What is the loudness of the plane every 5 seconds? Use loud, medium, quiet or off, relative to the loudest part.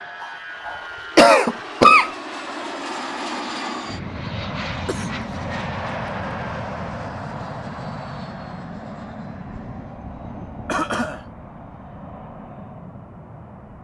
loud, loud, medium.